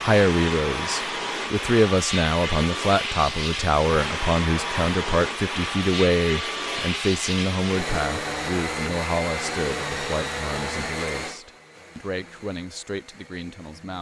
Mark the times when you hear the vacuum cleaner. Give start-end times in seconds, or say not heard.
0.0-13.9.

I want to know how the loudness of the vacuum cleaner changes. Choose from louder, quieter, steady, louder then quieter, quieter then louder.
quieter.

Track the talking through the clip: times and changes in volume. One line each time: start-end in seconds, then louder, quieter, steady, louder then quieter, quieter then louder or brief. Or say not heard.
0.0-13.9 quieter.